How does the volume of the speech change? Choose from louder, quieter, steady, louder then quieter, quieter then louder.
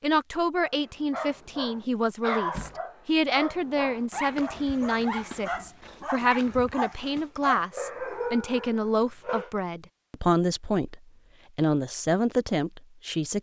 steady.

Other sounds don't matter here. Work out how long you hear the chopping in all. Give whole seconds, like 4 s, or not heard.
not heard.